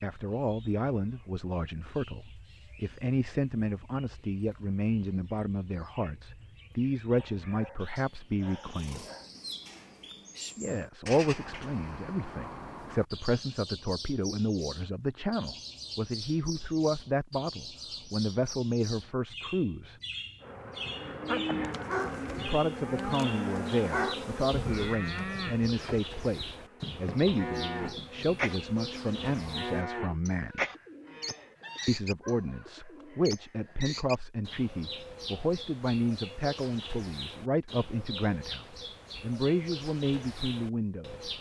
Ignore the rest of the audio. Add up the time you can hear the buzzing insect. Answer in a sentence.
You can hear the buzzing insect for 9 seconds altogether.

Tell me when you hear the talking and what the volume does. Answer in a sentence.
You can hear the talking from 0.0 to 9.1 s, at a steady volume; from 10.6 to 19.9 s, at a steady volume; from 22.4 to 30.6 s, at a steady volume; and from 31.9 to 41.3 s, at a steady volume.